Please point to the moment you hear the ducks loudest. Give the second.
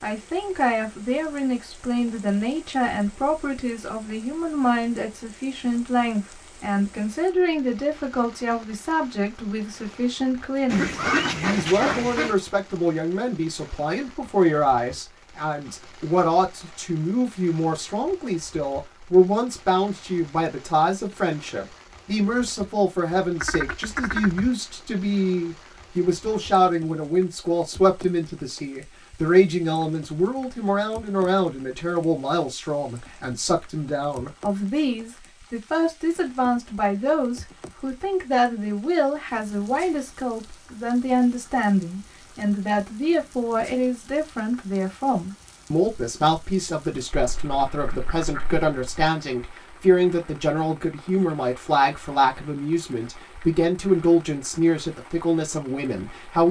11 s.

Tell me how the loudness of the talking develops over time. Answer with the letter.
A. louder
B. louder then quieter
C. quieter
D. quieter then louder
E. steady
E.